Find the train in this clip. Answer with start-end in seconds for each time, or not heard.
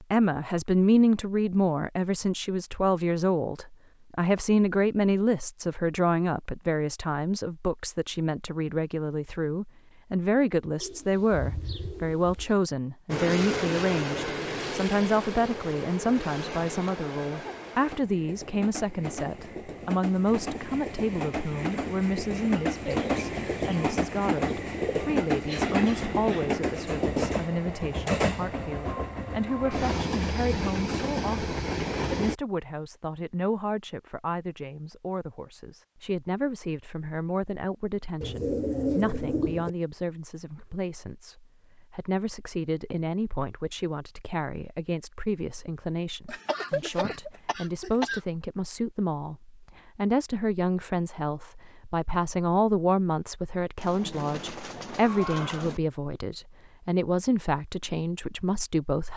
13.1-32.4.